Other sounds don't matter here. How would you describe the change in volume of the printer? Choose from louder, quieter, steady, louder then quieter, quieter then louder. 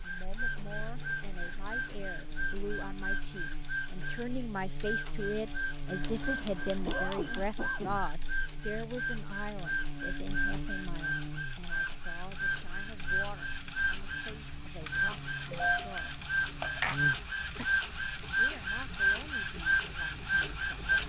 louder.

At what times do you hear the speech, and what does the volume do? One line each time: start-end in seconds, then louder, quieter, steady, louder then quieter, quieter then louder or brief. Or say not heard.
0.0-16.2 louder then quieter
18.4-20.9 brief.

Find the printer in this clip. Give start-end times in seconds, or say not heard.
0.0-21.0.